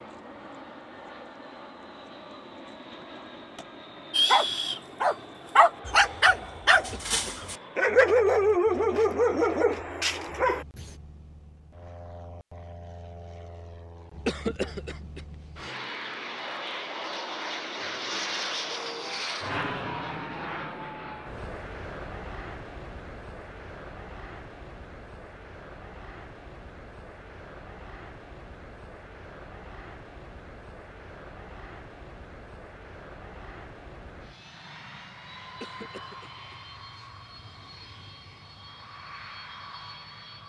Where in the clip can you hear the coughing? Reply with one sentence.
You can hear the coughing from 6.9 to 7.8 s, from 14.2 to 15.8 s and from 35.6 to 37.1 s.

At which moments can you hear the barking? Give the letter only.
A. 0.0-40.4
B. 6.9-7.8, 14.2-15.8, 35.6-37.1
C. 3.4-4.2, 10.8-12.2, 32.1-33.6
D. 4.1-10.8
D.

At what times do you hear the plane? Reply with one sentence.
You can hear the plane from 0.0 to 40.4 s.